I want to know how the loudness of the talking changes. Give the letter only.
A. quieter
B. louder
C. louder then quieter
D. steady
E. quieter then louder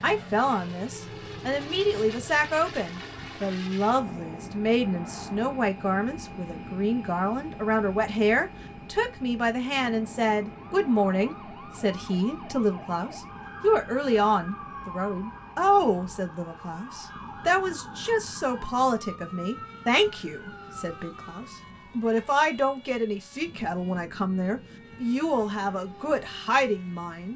D.